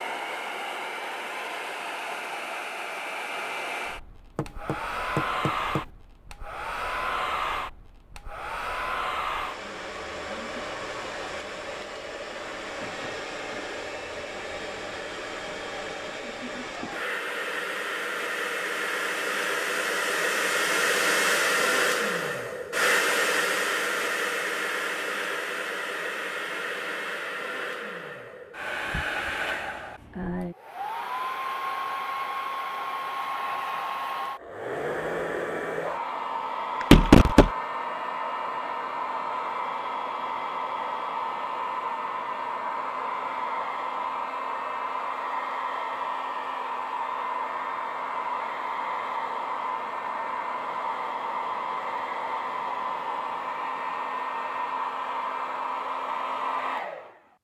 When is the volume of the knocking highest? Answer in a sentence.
The volume of the knocking peaks at 37 seconds.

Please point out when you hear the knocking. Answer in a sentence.
You can hear the knocking from 4.3 to 5.8 s and from 36.8 to 37.5 s.